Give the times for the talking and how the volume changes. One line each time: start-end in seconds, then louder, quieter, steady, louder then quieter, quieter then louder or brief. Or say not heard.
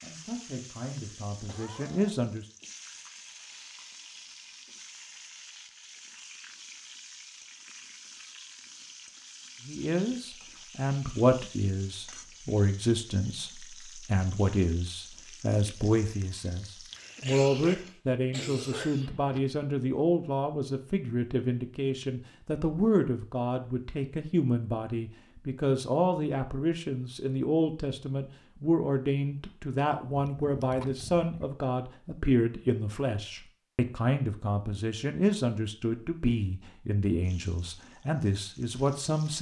0.0-2.5 brief
9.7-39.3 steady.